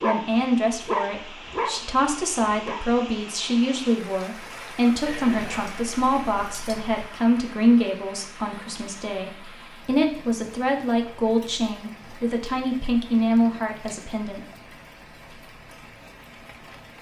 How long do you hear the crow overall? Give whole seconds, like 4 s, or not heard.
not heard.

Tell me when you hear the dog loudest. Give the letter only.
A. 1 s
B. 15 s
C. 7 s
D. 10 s
A.